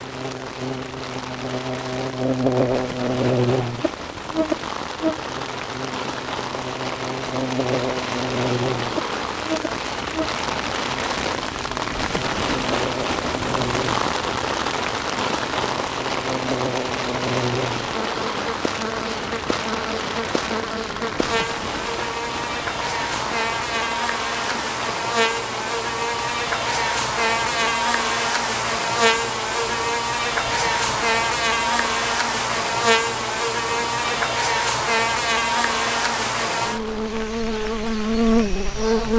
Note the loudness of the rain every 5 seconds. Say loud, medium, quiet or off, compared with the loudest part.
medium, loud, loud, loud, medium, medium, medium, medium.